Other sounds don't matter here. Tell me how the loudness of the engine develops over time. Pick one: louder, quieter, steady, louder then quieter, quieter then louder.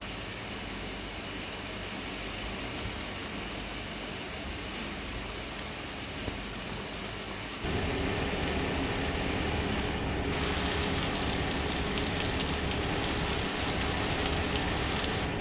steady.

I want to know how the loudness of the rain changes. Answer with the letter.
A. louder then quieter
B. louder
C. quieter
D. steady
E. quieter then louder
D.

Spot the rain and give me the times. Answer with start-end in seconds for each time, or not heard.
0.0-15.3.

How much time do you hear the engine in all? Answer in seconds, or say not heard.
8 s.